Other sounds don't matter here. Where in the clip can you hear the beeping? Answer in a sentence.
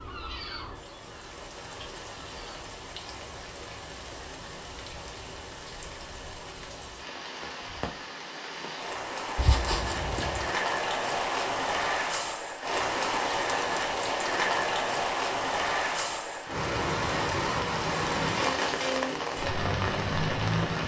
You can't hear the beeping here.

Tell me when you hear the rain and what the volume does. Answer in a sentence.
The rain can be heard from 0.0 to 20.8 s, getting louder.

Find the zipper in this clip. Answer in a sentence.
You can hear the zipper from 9.3 to 10.6 s.